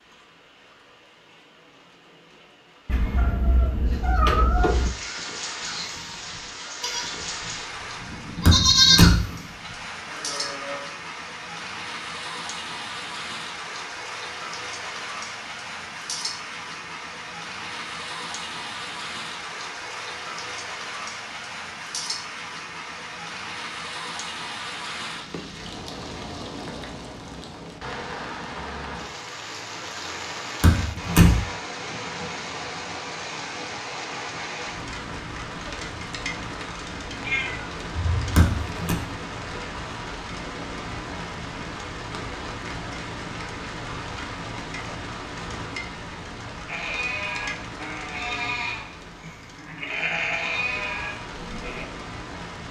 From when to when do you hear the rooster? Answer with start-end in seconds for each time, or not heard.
not heard.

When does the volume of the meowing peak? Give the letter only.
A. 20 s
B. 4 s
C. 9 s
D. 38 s
B.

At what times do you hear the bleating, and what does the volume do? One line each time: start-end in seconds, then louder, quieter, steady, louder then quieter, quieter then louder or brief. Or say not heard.
5.6-10.8 louder then quieter
46.6-51.9 quieter then louder.